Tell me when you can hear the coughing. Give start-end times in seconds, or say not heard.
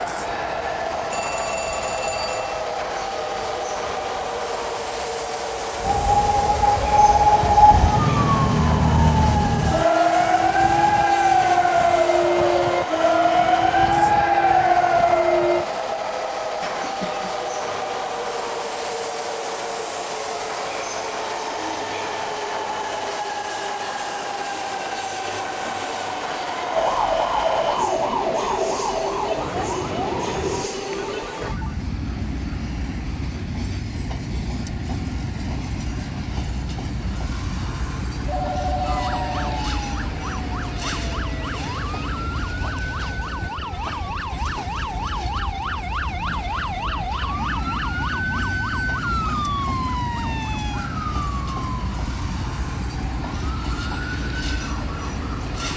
16.6-17.5.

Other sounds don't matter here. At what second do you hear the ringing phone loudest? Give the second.
39 s.